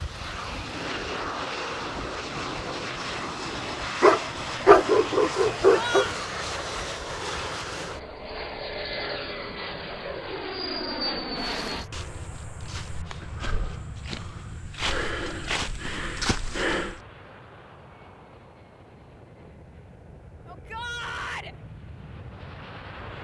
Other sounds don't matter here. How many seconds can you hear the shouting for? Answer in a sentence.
You can hear the shouting for 2 seconds altogether.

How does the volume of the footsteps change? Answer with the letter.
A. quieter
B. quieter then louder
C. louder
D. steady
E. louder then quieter
C.